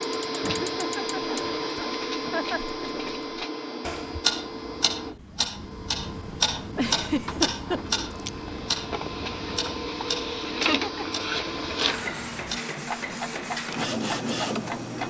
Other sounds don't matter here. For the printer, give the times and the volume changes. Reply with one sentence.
The printer can be heard from 0.0 to 15.0 s, getting quieter then louder.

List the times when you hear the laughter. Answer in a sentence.
The laughter can be heard from 0.4 to 2.6 s, from 6.8 to 7.8 s and from 10.4 to 11.1 s.